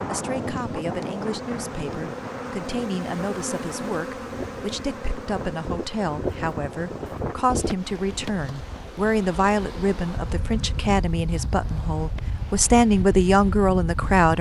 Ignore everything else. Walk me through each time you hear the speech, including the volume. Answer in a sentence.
The speech can be heard from 0.0 to 14.3 s, getting louder.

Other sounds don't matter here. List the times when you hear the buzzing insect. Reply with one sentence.
The buzzing insect can be heard from 0.0 to 11.0 s.